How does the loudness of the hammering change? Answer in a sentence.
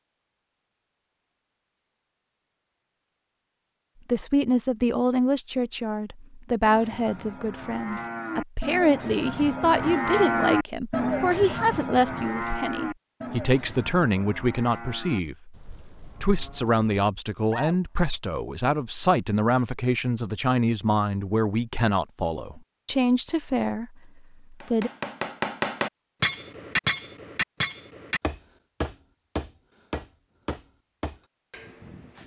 The volume of the hammering goes down.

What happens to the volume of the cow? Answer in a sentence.
The loudness of the cow goes up, then down.